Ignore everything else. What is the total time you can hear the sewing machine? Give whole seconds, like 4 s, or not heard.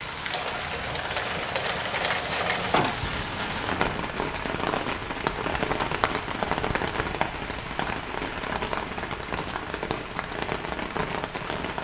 4 s.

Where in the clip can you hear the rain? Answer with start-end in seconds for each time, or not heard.
0.0-11.7.